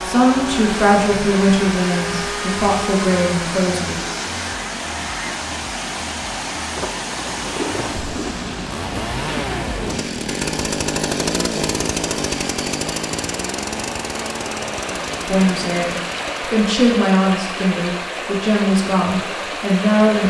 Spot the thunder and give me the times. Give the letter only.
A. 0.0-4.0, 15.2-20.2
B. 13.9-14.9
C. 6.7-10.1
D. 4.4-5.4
C.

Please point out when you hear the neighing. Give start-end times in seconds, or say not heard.
4.4-5.4.